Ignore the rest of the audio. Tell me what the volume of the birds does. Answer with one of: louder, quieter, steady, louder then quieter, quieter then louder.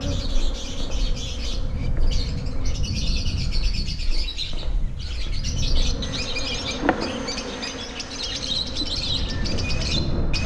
louder.